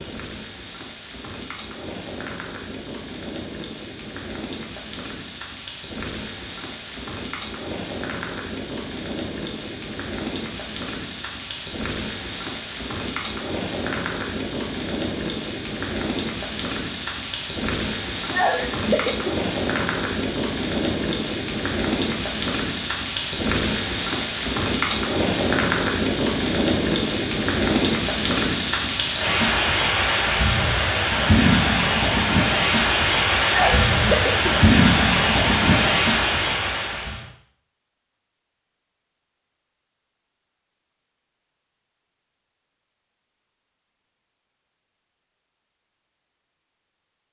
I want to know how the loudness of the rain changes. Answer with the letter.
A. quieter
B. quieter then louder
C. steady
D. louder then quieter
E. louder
E.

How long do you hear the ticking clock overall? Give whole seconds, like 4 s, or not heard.
not heard.